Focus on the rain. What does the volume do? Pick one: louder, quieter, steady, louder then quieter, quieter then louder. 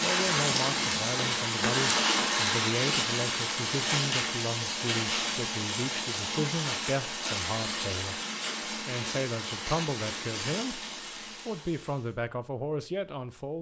quieter.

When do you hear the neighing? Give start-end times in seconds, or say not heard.
not heard.